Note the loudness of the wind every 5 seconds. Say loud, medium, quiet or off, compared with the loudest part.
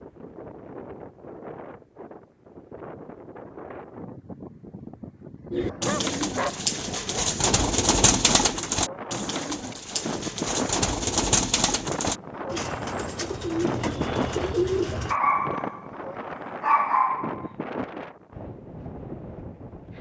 medium, medium, loud, medium.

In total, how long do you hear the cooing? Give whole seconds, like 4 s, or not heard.
10 s.